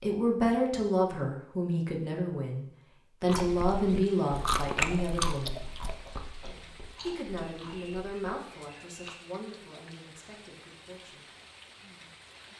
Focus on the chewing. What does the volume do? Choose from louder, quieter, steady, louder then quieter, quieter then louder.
quieter.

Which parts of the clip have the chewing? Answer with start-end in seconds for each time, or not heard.
3.2-9.2.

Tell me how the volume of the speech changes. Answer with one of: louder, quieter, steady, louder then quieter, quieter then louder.
quieter.